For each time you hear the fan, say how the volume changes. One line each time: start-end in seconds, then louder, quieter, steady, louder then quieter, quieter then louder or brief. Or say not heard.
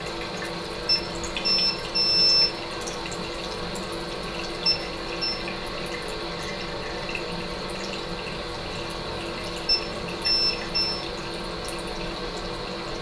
0.0-12.9 steady.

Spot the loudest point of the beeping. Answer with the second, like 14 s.
2 s.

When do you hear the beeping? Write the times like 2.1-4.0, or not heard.
0.8-2.5, 4.7-5.4, 9.7-11.0.